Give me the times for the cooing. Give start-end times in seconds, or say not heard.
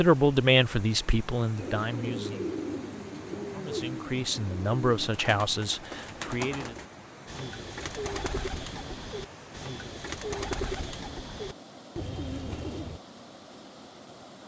1.6-13.0.